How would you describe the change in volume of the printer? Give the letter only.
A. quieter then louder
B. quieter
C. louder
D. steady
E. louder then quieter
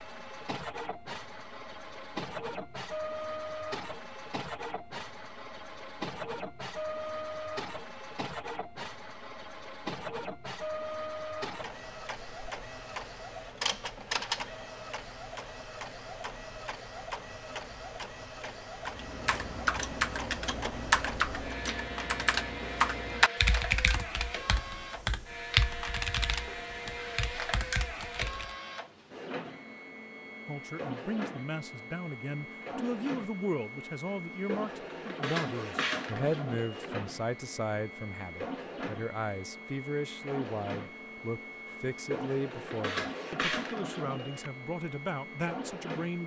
D.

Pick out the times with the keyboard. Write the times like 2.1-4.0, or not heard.
18.9-28.6.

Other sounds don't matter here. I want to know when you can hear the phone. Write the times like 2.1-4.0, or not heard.
not heard.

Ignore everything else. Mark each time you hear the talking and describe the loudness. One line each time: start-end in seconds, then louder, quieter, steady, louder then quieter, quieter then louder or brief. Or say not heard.
30.4-46.2 steady.